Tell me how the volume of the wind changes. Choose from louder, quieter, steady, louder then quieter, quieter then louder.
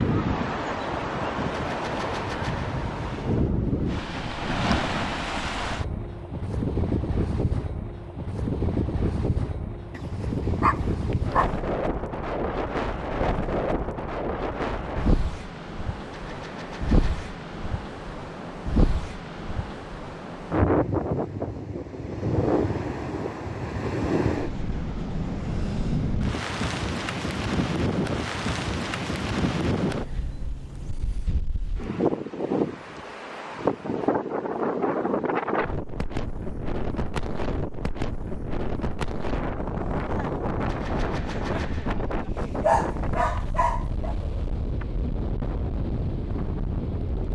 steady.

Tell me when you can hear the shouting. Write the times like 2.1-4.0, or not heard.
not heard.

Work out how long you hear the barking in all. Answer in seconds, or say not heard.
3 s.